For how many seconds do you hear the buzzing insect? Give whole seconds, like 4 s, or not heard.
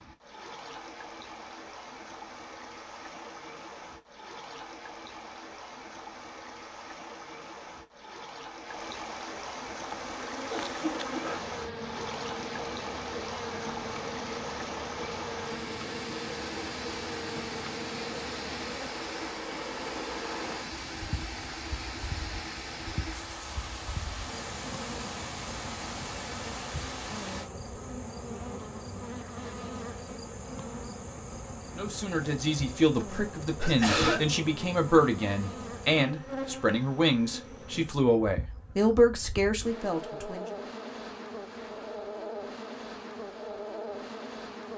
35 s.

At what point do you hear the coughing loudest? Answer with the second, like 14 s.
34 s.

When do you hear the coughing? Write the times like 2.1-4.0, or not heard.
10.5-11.3, 33.5-34.3.